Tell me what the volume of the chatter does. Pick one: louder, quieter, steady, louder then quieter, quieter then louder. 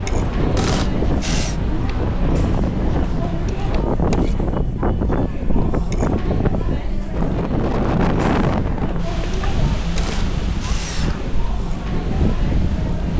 steady.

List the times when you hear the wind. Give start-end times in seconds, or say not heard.
0.0-13.1.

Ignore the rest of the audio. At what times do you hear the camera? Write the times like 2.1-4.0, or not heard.
0.6-1.6, 9.9-11.3.